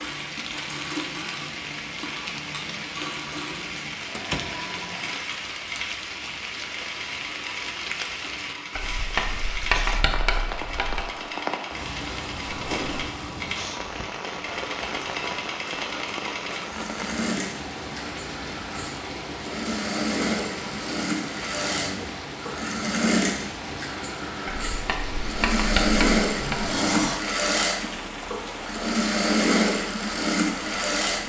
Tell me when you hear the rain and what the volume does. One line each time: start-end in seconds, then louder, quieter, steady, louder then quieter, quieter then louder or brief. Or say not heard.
0.0-31.2 steady.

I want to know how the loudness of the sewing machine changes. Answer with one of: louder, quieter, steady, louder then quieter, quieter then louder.
louder.